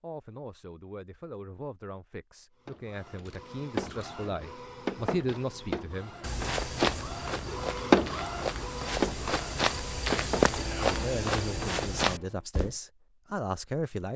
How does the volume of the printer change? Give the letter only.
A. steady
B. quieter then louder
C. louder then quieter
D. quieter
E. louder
C.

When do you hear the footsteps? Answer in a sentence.
You can hear the footsteps from 6.2 to 12.8 s.